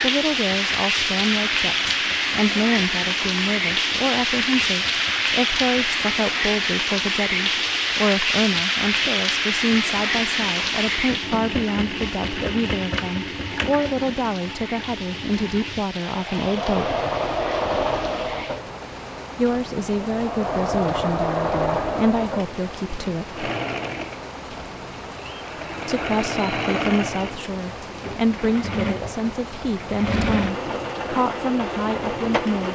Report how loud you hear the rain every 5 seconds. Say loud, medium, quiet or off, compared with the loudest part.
loud, loud, medium, quiet, quiet, quiet, quiet.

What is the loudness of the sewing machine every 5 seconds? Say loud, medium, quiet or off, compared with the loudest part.
quiet, quiet, medium, loud, loud, loud, loud.